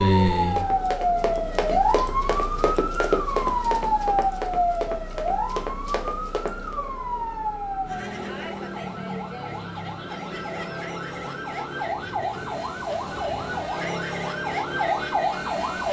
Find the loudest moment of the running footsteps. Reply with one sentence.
The loudest moment of the running footsteps is at 3 seconds.